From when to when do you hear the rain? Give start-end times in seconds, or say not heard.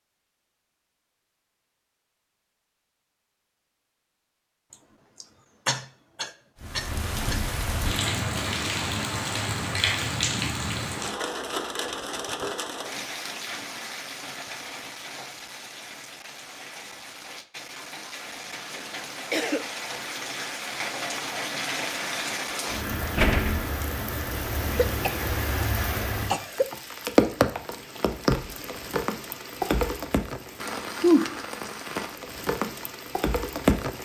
6.6-34.0.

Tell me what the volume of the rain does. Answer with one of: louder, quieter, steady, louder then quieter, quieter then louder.
quieter then louder.